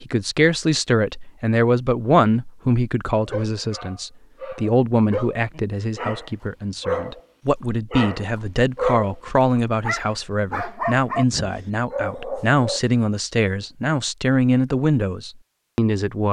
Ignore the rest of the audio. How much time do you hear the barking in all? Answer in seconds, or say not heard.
10 s.